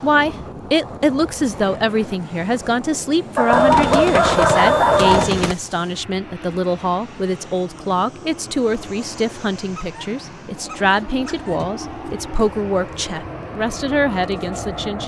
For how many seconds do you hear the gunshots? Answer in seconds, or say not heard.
2 s.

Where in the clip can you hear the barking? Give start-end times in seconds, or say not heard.
3.4-5.3, 9.8-11.7.